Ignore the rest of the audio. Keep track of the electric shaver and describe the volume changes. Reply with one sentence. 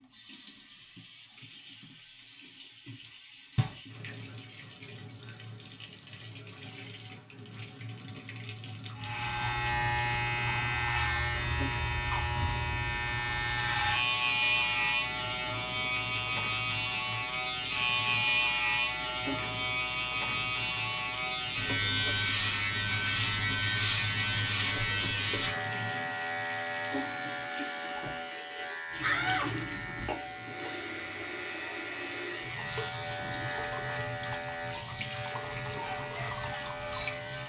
The volume of the electric shaver goes down.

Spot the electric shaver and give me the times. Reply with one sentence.
You can hear the electric shaver from 8.9 to 37.4 s.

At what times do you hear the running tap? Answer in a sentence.
You can hear the running tap from 0.0 to 37.4 s.